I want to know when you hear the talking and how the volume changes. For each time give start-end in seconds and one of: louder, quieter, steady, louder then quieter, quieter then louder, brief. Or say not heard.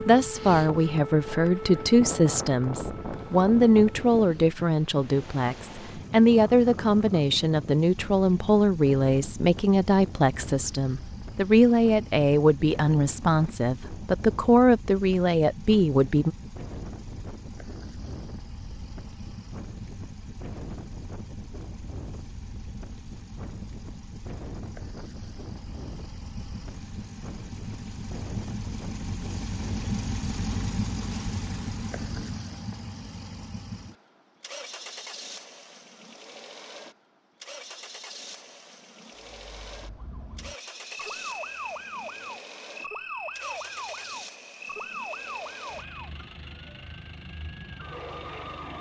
0.1-16.4 steady.